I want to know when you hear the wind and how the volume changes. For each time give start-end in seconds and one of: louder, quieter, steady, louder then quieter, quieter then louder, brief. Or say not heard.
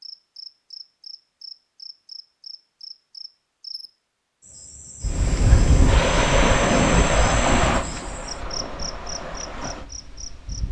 5.0-10.6 quieter.